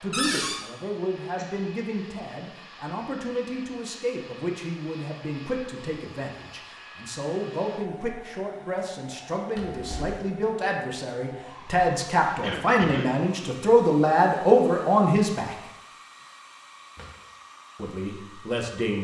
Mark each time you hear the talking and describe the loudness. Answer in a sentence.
You can hear the talking from 0.0 to 15.6 s, getting louder; and briefly from 17.8 to 18.9 s.